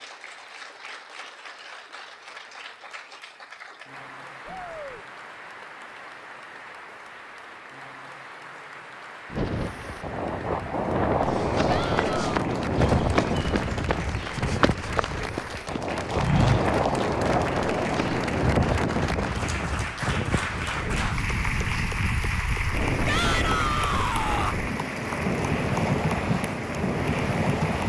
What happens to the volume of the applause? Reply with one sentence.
The volume of the applause goes up.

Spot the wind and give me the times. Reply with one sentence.
The wind can be heard from 9.3 to 27.8 s.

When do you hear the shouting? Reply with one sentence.
The shouting can be heard from 4.5 to 5.0 s, from 11.7 to 12.3 s and from 23.1 to 24.6 s.